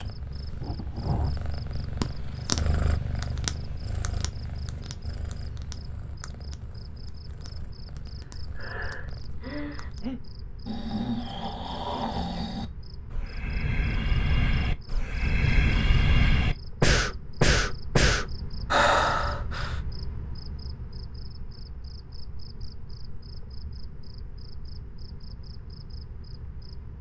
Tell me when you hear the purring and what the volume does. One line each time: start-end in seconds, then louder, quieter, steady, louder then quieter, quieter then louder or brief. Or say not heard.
0.0-10.2 quieter.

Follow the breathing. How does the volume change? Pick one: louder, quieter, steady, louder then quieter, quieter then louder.
louder.